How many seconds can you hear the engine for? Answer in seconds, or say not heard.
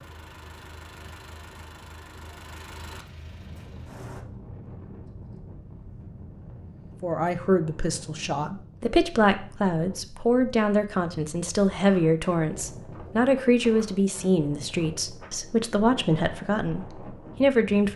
4 s.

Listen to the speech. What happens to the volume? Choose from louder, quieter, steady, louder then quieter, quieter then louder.
steady.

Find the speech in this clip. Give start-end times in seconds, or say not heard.
7.0-17.9.